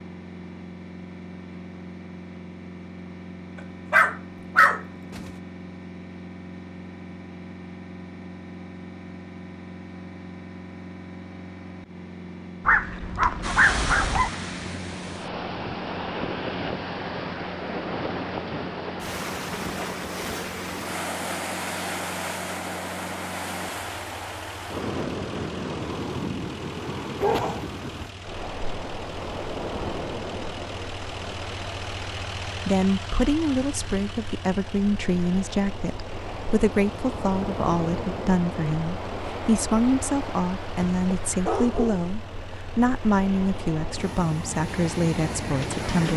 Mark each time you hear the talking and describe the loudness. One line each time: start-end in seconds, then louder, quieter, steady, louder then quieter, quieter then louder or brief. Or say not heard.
32.5-46.1 steady.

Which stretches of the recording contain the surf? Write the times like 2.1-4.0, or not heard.
13.4-46.1.